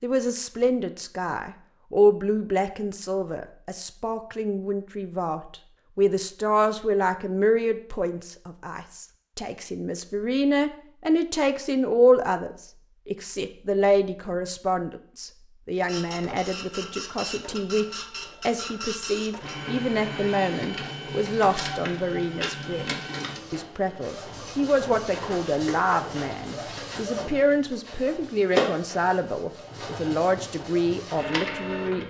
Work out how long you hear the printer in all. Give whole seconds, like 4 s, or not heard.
16 s.